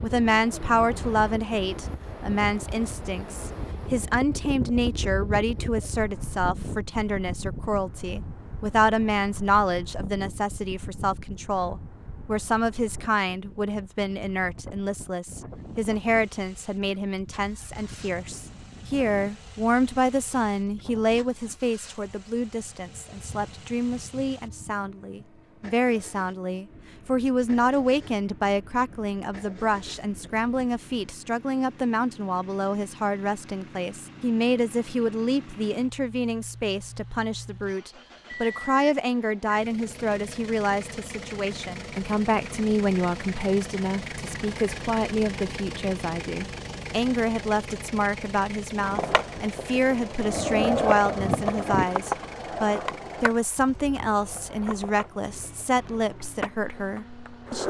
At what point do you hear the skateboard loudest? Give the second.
51 s.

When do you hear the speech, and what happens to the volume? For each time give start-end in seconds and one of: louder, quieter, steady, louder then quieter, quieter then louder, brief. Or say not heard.
0.0-57.6 steady.